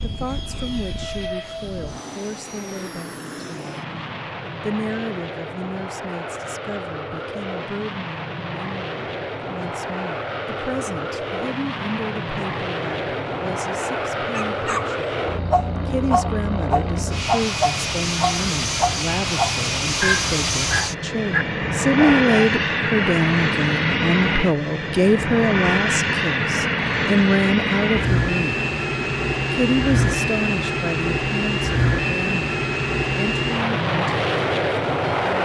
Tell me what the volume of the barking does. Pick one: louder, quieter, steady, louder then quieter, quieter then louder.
steady.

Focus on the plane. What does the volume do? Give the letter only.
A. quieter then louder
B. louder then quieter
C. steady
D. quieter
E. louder
E.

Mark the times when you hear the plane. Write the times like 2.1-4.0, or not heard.
0.0-35.3.